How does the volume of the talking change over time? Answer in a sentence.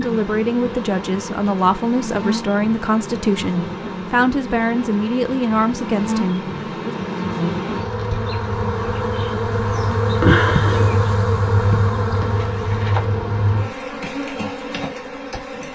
The loudness of the talking stays about the same.